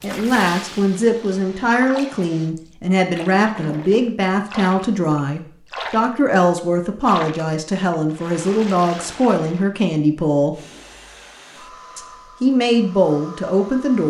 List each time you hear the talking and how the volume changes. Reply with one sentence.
The talking can be heard from 0.0 to 10.6 s, at a steady volume; and briefly from 11.9 to 14.0 s.